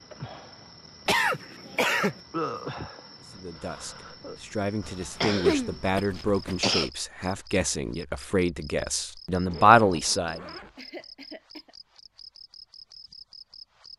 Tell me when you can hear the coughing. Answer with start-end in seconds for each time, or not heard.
1.1-2.1, 4.8-6.9, 10.8-11.8.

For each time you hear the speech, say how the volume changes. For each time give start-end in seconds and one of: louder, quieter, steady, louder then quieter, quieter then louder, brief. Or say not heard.
3.3-10.4 louder.